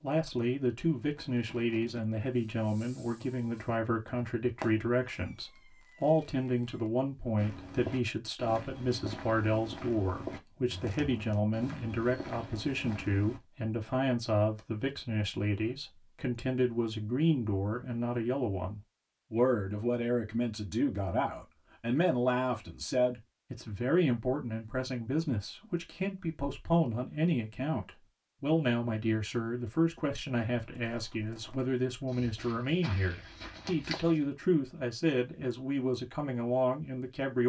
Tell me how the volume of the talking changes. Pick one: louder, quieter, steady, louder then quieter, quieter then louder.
steady.